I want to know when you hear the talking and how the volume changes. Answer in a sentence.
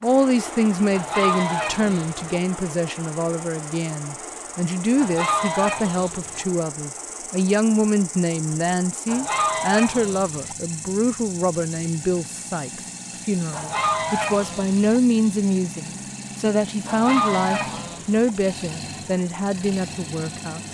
The talking can be heard from 0.0 to 20.6 s, at a steady volume.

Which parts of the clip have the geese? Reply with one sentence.
The geese can be heard from 0.9 to 2.4 s, from 5.0 to 6.5 s, from 9.1 to 10.6 s, from 13.5 to 14.8 s and from 16.9 to 18.3 s.